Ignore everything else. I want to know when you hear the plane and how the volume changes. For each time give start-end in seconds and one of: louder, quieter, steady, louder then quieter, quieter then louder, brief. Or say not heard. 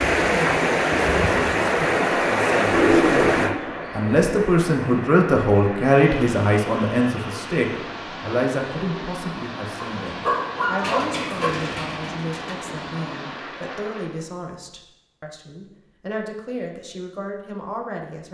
not heard.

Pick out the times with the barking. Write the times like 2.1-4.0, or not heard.
9.8-11.5.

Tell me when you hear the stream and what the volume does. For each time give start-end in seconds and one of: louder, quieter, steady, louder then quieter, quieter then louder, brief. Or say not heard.
0.0-14.2 quieter.